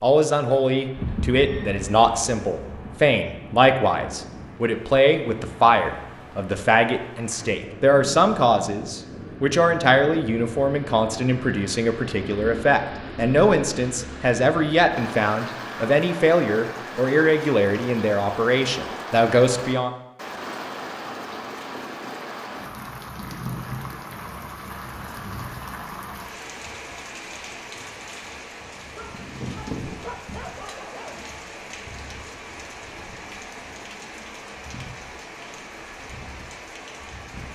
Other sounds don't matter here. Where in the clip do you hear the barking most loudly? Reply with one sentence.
The volume of the barking peaks at 30 seconds.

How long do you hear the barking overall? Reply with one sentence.
The barking can be heard for 2 seconds in total.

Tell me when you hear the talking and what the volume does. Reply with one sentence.
The talking can be heard from 0.0 to 19.9 s, at a steady volume.